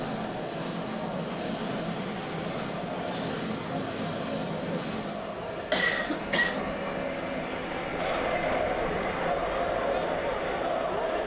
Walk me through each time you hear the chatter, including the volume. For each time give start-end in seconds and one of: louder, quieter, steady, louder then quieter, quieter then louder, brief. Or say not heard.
0.0-11.2 louder.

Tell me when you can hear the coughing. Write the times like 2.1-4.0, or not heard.
5.7-6.8.